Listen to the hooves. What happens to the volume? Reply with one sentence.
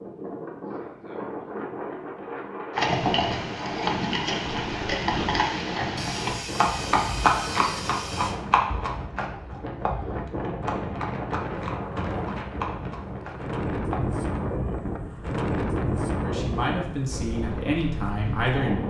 The volume of the hooves goes down.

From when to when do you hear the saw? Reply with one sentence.
The saw can be heard from 6.0 to 8.3 s.